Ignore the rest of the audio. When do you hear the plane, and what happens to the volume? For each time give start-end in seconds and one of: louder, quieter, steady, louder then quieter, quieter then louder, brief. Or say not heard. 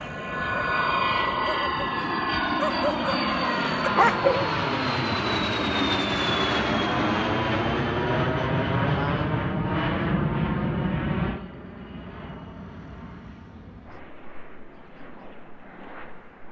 0.0-16.4 quieter.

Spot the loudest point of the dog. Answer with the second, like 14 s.
4 s.